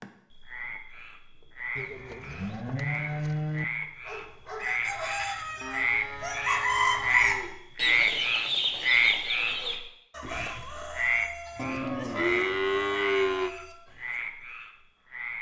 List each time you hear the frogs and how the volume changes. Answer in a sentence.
The frogs can be heard from 0.0 to 15.3 s, getting louder then quieter.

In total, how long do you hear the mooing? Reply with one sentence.
You can hear the mooing for 6 seconds altogether.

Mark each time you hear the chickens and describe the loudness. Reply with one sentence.
The chickens can be heard from 3.8 to 14.2 s, getting louder then quieter.